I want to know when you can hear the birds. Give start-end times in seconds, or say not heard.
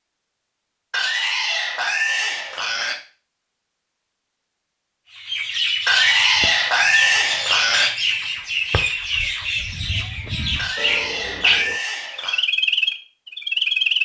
5.1-14.0.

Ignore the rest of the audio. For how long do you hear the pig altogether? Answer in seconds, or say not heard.
6 s.